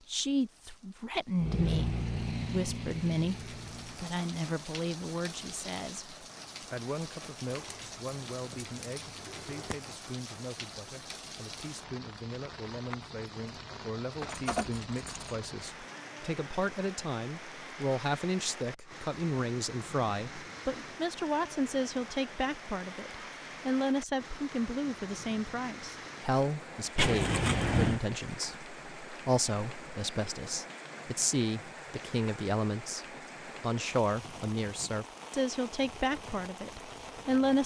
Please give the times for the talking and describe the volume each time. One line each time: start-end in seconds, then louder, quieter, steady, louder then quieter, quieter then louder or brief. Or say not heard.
0.1-37.6 quieter then louder.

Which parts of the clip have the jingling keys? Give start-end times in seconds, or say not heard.
7.5-9.8, 14.2-15.4, 26.9-28.0.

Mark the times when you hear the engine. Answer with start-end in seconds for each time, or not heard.
1.4-4.2.